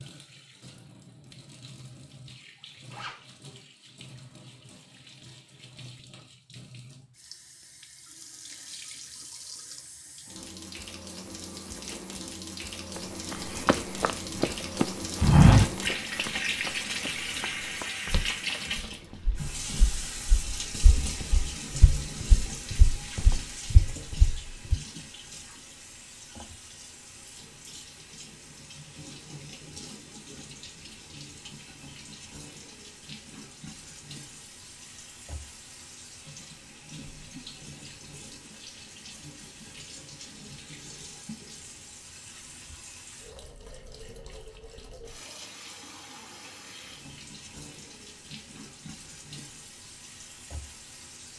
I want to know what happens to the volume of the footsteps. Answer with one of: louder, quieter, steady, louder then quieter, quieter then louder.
quieter then louder.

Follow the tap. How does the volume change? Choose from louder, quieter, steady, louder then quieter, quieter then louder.
louder then quieter.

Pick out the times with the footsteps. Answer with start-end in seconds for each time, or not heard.
13.3-24.8.